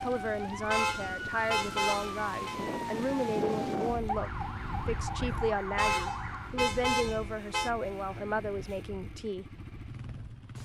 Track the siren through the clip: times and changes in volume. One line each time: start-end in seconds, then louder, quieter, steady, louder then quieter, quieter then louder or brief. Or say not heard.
0.0-6.5 steady.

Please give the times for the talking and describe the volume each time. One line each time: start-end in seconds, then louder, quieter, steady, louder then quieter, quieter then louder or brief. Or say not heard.
0.0-9.4 steady.